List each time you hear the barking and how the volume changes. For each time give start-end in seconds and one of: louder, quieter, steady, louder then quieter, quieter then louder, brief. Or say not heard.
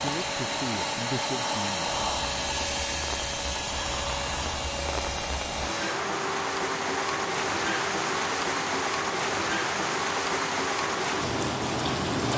not heard.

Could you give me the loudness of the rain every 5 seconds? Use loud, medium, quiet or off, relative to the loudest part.
medium, loud, loud.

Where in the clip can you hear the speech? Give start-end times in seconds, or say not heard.
0.0-1.8.